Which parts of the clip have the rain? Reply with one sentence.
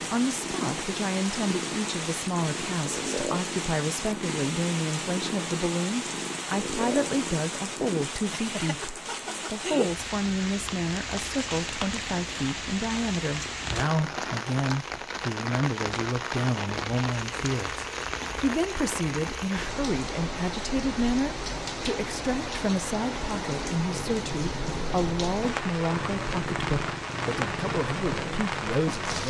You can hear the rain from 0.0 to 29.2 s.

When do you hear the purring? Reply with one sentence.
You can hear the purring from 0.0 to 8.1 s and from 23.9 to 29.2 s.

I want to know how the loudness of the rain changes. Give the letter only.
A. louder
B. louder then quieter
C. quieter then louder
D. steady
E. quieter
D.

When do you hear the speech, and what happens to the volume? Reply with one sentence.
You can hear the speech from 0.1 to 29.2 s, at a steady volume.